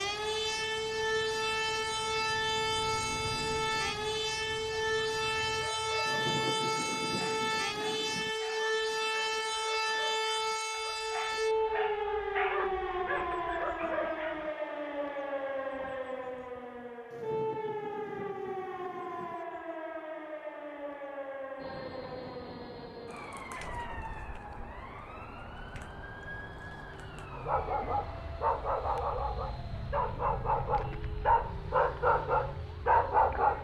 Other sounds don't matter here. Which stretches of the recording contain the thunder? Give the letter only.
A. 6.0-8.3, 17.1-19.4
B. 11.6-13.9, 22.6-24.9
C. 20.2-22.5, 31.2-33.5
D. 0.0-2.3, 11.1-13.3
A.